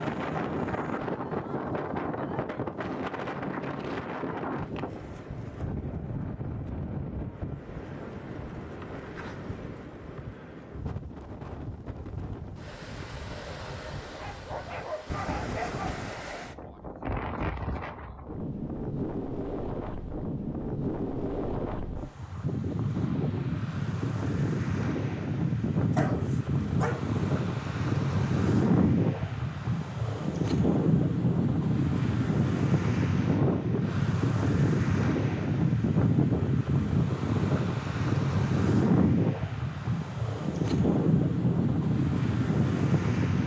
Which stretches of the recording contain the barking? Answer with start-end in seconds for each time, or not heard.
14.1-16.1, 25.9-27.1.